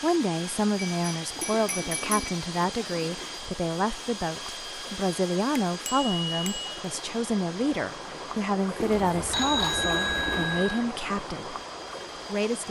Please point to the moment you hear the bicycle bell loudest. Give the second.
10 s.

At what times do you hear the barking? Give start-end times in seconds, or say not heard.
not heard.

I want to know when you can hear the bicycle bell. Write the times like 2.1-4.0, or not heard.
0.8-2.7, 5.8-6.7, 9.3-10.9.